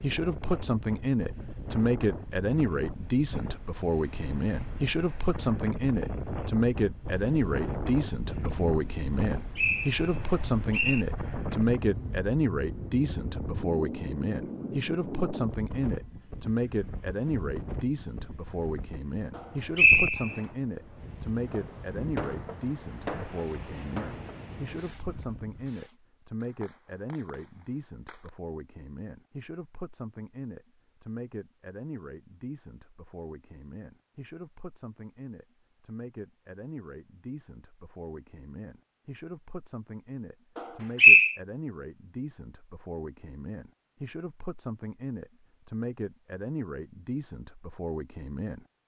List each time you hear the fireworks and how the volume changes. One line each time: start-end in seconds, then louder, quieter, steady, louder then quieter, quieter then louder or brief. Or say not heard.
21.4-28.3 quieter.